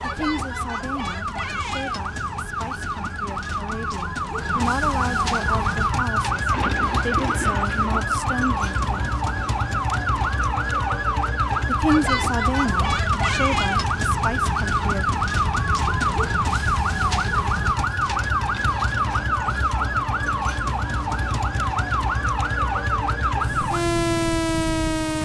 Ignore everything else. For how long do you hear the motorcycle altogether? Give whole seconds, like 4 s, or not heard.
20 s.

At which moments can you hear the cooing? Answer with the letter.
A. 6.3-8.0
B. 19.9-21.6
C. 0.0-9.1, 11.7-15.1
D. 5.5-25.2
A.